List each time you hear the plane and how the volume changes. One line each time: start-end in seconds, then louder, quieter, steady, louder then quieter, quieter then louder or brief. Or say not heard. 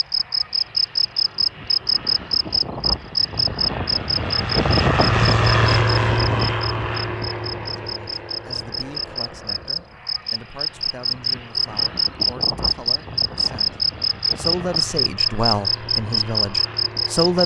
0.0-17.4 louder then quieter.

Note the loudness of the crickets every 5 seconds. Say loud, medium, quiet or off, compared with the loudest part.
loud, medium, loud, loud.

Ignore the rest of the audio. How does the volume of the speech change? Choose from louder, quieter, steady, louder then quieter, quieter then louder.
louder.